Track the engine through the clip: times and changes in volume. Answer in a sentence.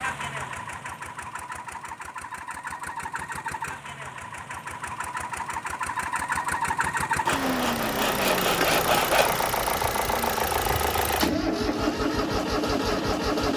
The engine can be heard from 0.0 to 13.5 s, getting louder.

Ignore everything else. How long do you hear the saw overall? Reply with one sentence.
You can hear the saw for 2 seconds altogether.